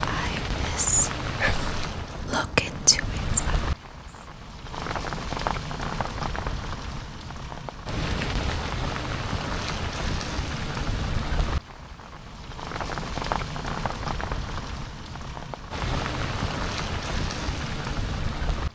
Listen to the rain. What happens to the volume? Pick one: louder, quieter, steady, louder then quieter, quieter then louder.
steady.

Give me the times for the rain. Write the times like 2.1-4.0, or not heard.
0.0-18.7.